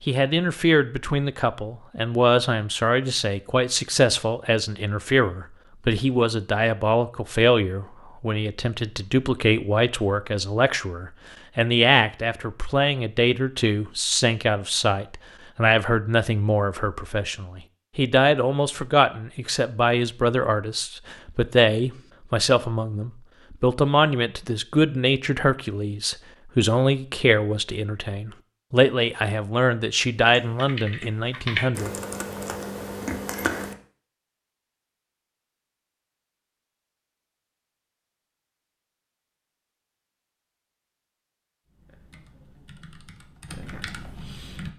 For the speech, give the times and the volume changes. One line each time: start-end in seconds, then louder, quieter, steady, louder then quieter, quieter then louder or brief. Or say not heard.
0.0-31.9 steady.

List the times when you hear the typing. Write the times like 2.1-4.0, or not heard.
30.2-33.8, 41.6-44.7.